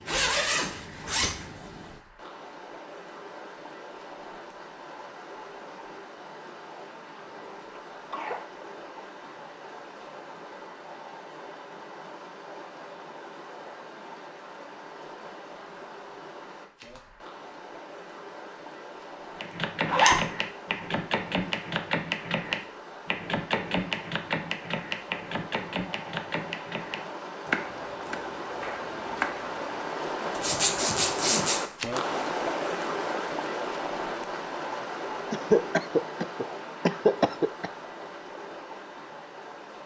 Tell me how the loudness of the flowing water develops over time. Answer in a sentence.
The loudness of the flowing water goes up.